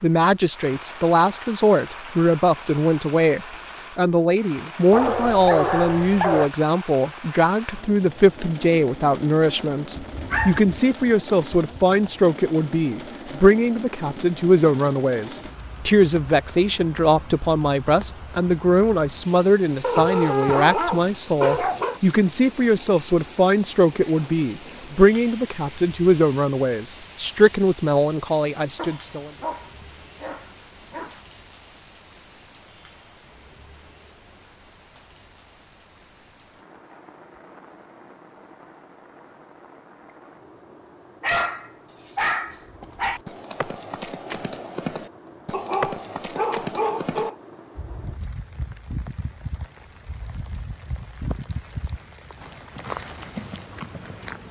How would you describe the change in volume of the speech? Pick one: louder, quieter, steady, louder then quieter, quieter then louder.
steady.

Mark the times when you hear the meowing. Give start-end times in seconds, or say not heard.
not heard.